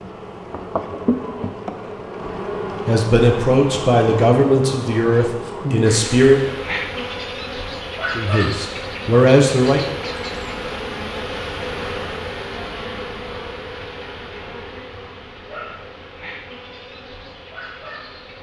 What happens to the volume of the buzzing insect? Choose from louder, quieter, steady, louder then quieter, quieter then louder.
quieter.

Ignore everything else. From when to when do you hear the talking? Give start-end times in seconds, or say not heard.
2.9-6.5, 8.2-9.8.